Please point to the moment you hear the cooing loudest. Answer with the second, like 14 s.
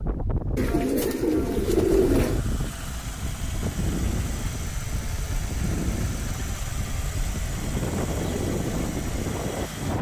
2 s.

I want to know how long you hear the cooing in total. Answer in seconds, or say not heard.
2 s.